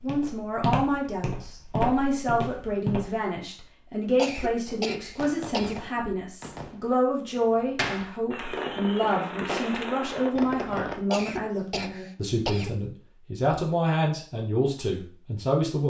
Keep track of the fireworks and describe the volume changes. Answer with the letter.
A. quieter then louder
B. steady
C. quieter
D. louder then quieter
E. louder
E.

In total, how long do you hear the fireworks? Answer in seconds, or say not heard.
6 s.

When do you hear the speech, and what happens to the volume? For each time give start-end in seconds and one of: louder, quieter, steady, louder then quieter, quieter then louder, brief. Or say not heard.
0.0-15.8 steady.